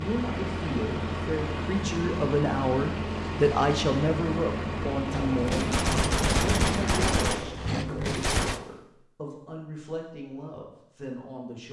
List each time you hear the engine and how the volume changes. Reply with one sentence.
The engine can be heard from 0.0 to 7.4 s, at a steady volume.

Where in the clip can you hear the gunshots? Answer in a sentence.
You can hear the gunshots from 5.1 to 8.6 s.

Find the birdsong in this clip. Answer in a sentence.
The birdsong can't be heard in this clip.